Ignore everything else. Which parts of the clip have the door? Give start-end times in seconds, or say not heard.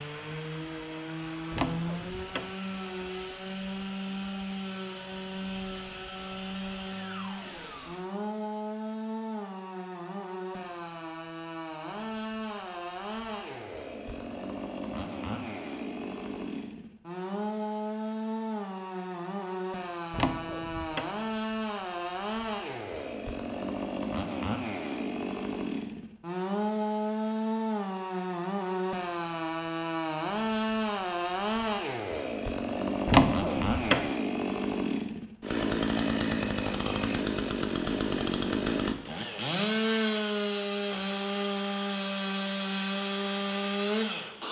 1.5-2.5, 20.1-21.1, 33.0-34.1.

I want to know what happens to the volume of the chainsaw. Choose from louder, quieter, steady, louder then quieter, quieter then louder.
louder.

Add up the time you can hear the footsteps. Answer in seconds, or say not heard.
not heard.